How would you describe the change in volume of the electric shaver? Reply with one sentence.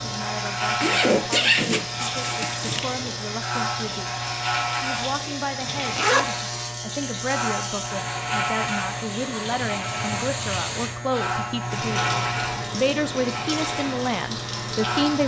The volume of the electric shaver stays about the same.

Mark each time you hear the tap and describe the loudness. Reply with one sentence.
You can hear the tap from 0.0 to 15.2 s, at a steady volume.